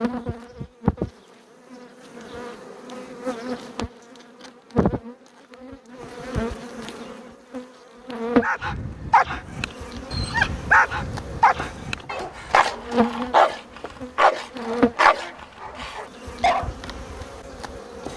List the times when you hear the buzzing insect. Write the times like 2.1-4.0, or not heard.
0.0-18.1.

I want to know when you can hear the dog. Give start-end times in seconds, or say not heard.
8.4-16.7.